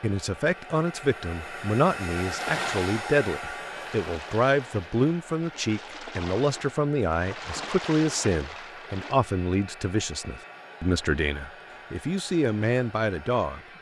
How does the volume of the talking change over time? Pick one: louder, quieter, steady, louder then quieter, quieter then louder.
steady.